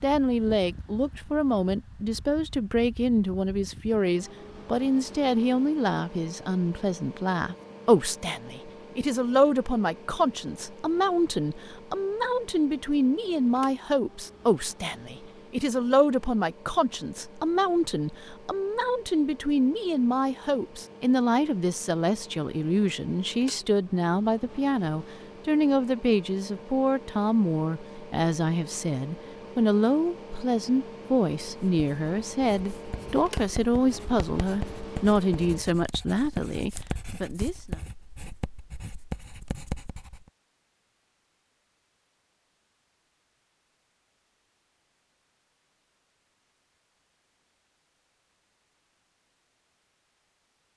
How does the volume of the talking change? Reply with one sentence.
The volume of the talking stays about the same.